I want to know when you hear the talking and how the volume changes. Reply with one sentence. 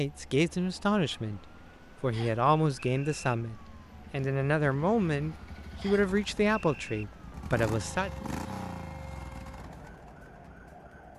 You can hear the talking from 0.0 to 8.1 s, at a steady volume.